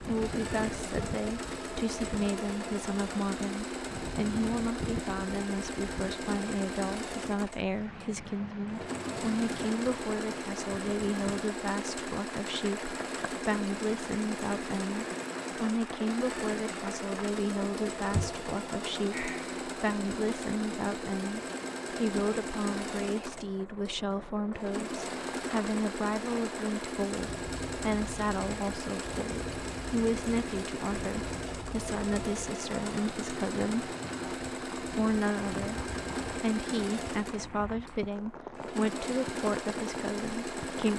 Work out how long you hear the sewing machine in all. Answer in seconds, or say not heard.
41 s.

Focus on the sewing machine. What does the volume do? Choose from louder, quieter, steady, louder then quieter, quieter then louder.
steady.